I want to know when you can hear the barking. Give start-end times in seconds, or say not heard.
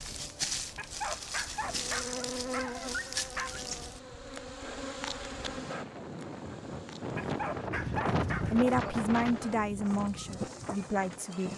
0.8-3.6, 7.2-8.8.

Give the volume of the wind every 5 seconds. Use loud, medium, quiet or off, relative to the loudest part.
quiet, loud, medium.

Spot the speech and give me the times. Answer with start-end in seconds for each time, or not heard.
8.5-11.5.